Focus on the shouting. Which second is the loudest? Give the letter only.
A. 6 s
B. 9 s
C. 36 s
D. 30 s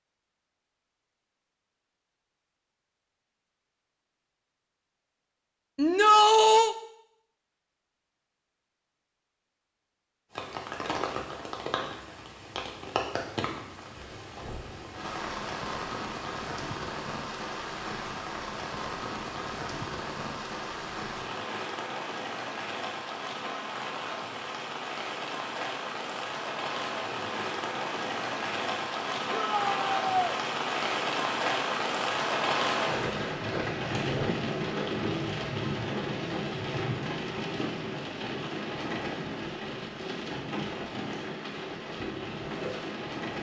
A.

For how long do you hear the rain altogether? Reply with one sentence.
You can hear the rain for 33 seconds altogether.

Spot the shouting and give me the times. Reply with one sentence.
The shouting can be heard from 5.8 to 6.8 s and from 29.3 to 30.4 s.